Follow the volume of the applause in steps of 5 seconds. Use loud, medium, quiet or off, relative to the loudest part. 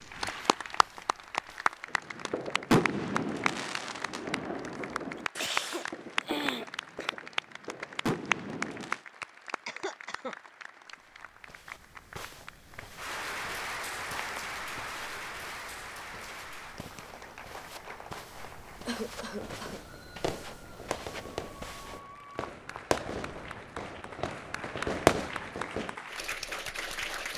loud, loud, loud, medium, medium, loud.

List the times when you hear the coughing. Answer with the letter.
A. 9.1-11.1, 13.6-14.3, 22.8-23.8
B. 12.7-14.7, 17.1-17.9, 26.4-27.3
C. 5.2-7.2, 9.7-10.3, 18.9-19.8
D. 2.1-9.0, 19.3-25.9
C.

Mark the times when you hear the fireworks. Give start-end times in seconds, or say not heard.
2.1-9.0, 19.3-25.9.